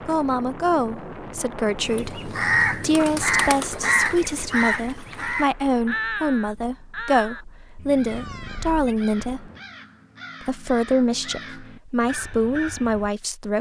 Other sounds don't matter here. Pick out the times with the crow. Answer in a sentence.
You can hear the crow from 1.9 to 13.1 s.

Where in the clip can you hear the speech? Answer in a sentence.
The speech can be heard from 0.0 to 9.5 s and from 10.4 to 13.5 s.